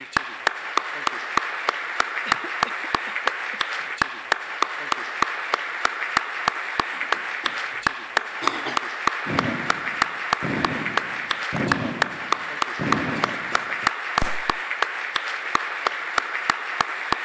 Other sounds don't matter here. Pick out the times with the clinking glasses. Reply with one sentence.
The clinking glasses can't be heard in this clip.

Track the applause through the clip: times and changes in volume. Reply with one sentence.
You can hear the applause from 0.0 to 17.1 s, at a steady volume.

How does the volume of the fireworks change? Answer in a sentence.
The volume of the fireworks goes up, then down.